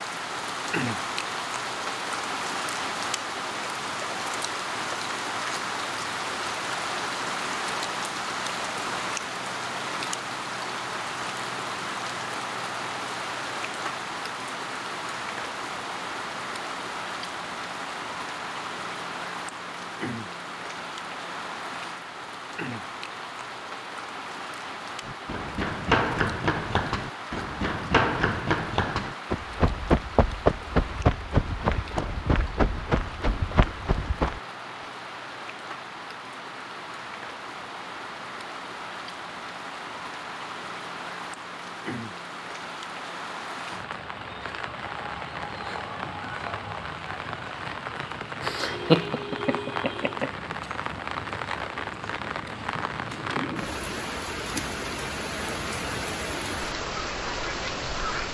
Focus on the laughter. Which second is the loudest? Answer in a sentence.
The volume of the laughter peaks at 49 seconds.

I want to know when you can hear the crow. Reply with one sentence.
The crow can't be heard in this clip.